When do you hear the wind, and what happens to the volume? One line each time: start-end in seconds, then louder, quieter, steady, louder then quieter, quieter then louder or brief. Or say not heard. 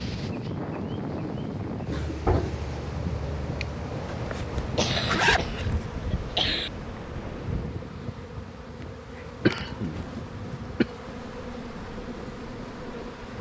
0.0-13.3 quieter.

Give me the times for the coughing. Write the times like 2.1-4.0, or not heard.
1.9-2.5, 4.8-6.7, 9.4-10.8.